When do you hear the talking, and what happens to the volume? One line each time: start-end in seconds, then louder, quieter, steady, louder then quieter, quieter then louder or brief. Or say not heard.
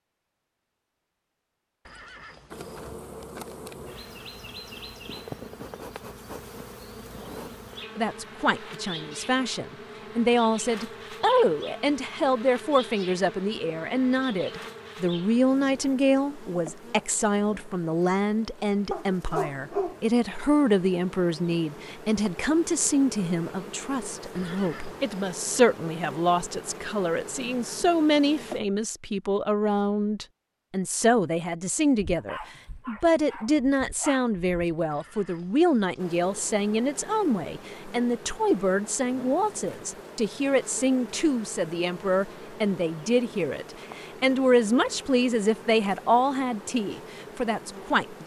8.0-48.2 steady.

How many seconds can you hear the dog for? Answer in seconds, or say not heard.
4 s.